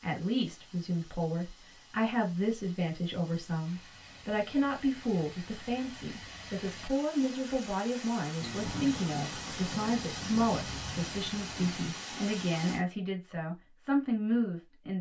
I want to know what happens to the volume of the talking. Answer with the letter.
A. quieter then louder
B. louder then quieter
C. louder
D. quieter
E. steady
E.